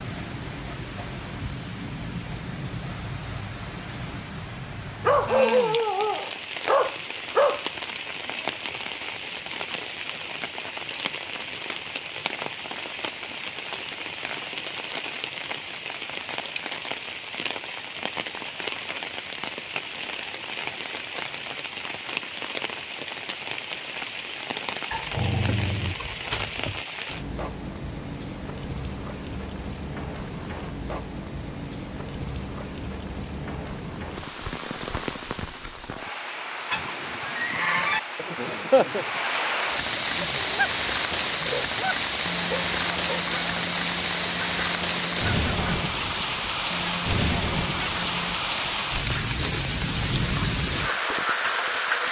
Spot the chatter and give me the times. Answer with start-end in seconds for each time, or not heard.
not heard.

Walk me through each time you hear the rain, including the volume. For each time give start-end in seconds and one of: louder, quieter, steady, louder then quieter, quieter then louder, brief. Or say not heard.
0.0-52.0 louder.